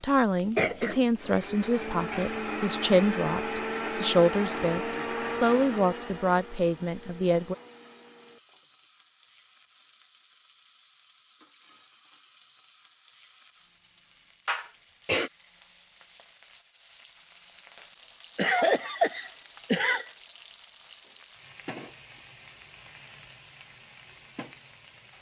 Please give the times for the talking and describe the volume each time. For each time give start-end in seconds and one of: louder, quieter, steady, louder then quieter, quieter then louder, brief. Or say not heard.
0.0-7.5 steady.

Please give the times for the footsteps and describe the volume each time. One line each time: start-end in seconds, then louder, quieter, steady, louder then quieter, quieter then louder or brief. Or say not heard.
not heard.